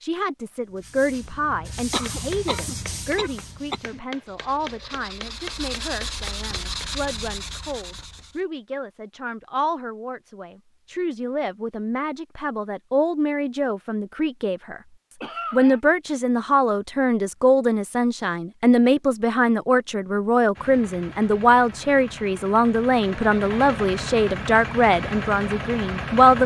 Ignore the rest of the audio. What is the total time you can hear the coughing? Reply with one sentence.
The coughing can be heard for 3 seconds in total.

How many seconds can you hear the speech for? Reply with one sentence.
The speech can be heard for 26 seconds in total.